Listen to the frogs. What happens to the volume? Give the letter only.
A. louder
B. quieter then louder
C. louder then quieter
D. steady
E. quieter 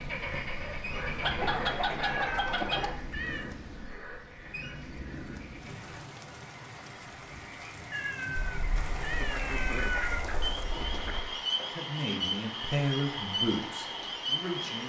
B.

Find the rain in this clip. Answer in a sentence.
You can hear the rain from 0.0 to 14.8 s.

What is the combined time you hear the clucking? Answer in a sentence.
You can hear the clucking for 5 seconds altogether.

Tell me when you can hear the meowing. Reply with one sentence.
The meowing can be heard from 2.0 to 3.5 s and from 7.9 to 10.2 s.